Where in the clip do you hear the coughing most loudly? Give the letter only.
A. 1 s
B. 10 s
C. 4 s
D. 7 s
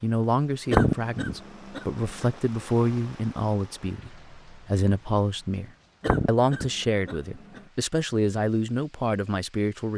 A.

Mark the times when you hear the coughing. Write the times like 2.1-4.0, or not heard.
0.7-2.3, 6.0-7.6.